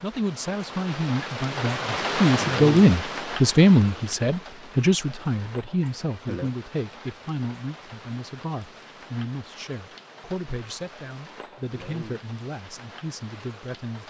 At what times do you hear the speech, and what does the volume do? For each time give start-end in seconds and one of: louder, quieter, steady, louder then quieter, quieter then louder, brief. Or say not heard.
0.0-14.0 quieter.